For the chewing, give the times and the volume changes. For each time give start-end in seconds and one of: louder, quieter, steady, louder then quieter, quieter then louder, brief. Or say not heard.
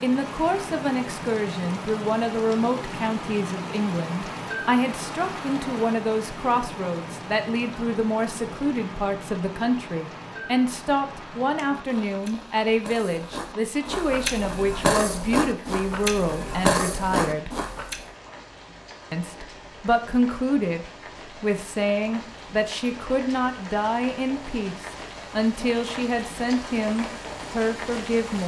11.6-18.0 louder.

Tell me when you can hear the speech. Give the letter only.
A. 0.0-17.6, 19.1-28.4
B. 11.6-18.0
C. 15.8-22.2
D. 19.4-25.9
A.